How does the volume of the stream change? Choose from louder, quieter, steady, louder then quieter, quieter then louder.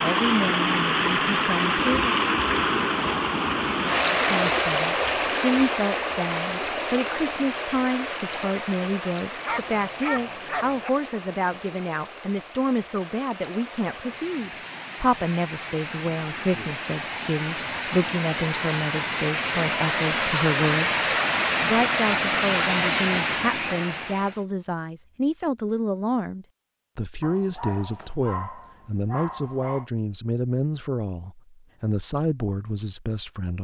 quieter then louder.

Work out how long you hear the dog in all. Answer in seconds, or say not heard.
4 s.